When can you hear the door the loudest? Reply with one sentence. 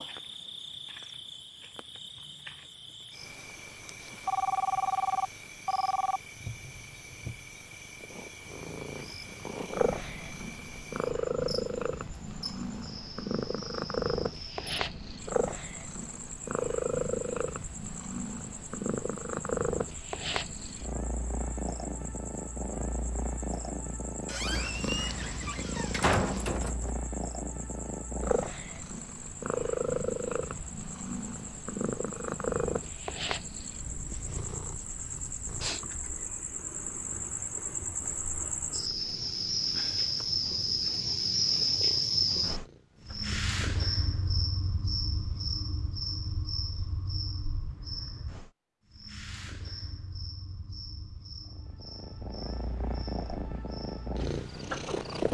The volume of the door peaks at 26 seconds.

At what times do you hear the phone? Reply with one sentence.
The phone can be heard from 4.2 to 6.2 s.